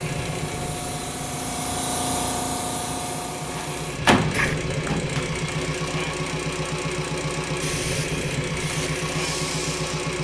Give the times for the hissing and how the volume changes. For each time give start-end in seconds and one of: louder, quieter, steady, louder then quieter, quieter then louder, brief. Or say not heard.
0.0-4.6 louder then quieter
7.6-10.0 brief.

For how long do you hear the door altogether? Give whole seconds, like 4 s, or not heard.
2 s.